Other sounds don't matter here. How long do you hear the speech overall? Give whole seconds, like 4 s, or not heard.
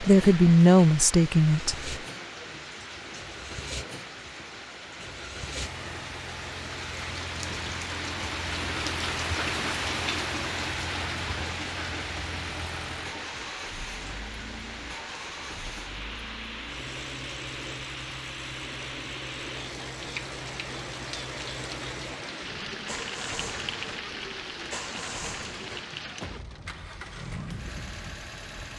2 s.